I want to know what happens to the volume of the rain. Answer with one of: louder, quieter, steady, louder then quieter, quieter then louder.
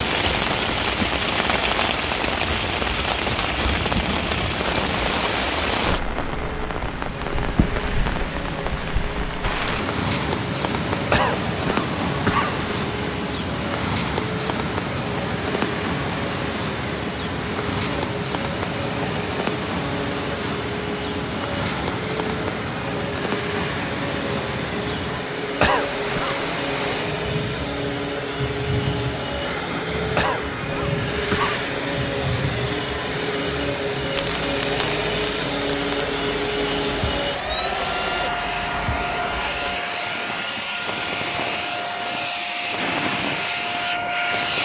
quieter.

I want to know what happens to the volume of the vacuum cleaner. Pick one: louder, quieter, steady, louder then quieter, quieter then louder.
louder.